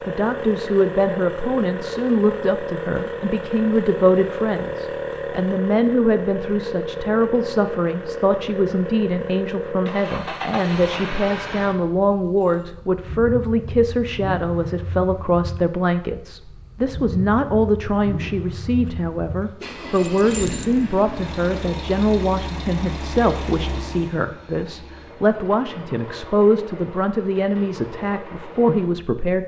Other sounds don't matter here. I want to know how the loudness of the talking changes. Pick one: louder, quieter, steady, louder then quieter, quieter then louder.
steady.